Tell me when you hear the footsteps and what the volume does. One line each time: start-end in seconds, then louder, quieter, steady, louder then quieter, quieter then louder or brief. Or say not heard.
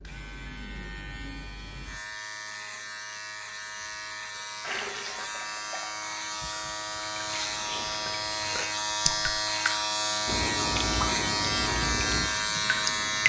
not heard.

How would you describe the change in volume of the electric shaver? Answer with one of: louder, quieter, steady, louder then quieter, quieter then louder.
louder.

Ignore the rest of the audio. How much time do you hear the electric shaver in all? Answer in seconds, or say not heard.
13 s.